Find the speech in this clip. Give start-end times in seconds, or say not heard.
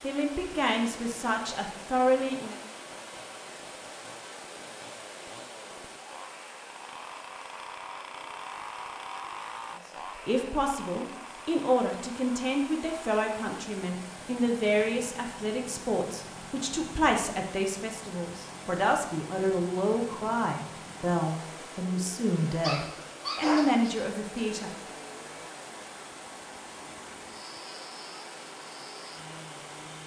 0.0-2.5, 10.2-24.8.